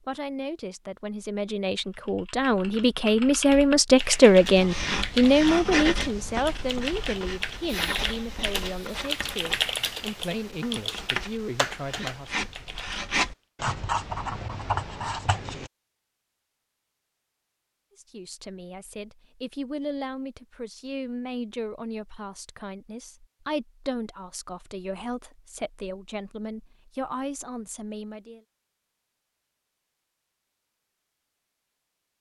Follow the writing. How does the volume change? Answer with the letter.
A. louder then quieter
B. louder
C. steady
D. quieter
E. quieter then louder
E.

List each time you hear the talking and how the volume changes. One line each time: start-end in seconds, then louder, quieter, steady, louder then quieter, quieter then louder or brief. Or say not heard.
0.0-12.3 louder then quieter
17.9-28.4 steady.